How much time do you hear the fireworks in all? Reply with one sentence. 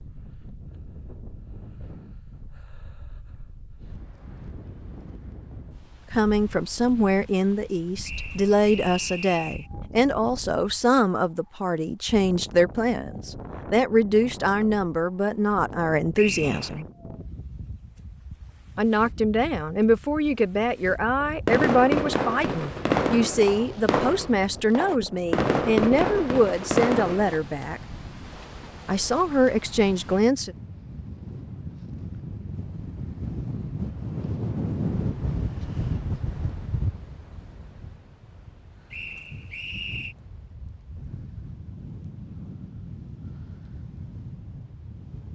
The fireworks can be heard for 6 seconds in total.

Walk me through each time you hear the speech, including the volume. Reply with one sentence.
The speech can be heard from 6.1 to 16.9 s, at a steady volume; from 18.8 to 27.8 s, at a steady volume; and briefly from 28.9 to 30.6 s.